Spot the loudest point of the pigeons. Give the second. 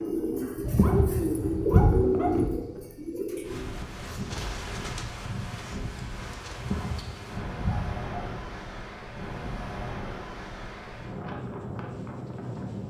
2 s.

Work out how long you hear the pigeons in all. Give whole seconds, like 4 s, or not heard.
7 s.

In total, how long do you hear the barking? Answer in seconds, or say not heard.
4 s.